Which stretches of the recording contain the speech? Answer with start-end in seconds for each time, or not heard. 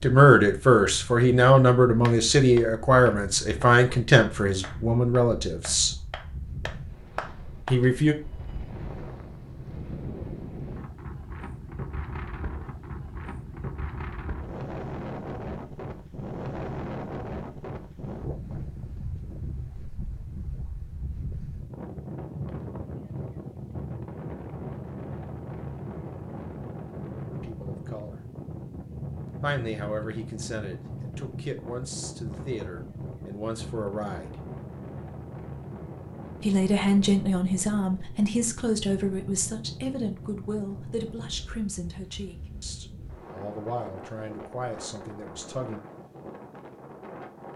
0.0-5.9, 7.7-8.2, 27.3-28.2, 29.4-34.4, 36.4-45.8.